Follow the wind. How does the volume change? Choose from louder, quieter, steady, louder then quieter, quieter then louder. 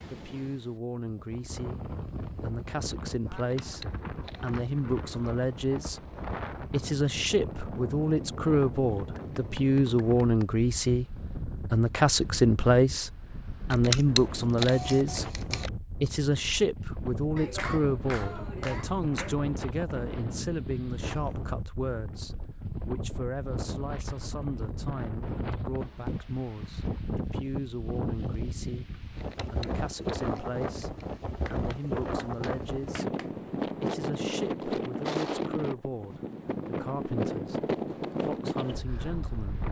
louder.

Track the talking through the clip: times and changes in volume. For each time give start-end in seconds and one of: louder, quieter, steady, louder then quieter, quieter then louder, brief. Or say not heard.
0.1-39.6 louder then quieter.